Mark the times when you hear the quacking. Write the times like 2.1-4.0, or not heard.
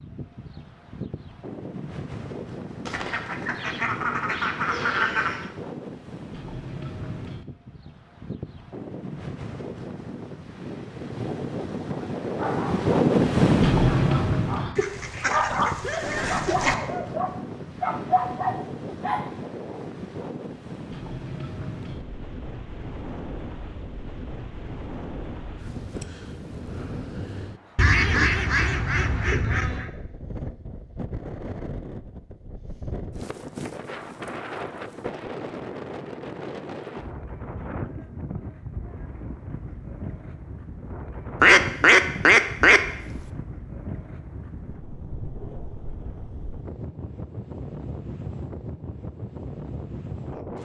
2.9-5.5, 14.8-16.8, 27.8-29.9, 41.4-43.2.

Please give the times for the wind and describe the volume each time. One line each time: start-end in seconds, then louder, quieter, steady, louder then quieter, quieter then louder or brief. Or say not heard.
0.0-50.6 louder then quieter.